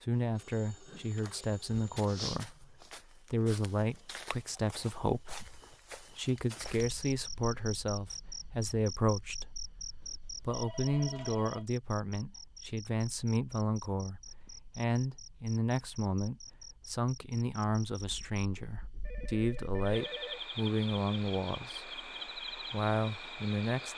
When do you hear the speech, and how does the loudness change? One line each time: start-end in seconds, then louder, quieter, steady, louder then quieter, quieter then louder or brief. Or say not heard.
0.0-23.9 steady.